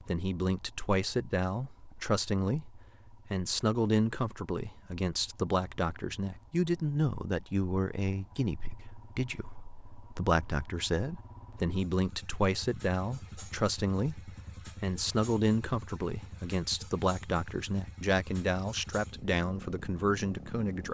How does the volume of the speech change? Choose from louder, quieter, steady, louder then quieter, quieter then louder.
steady.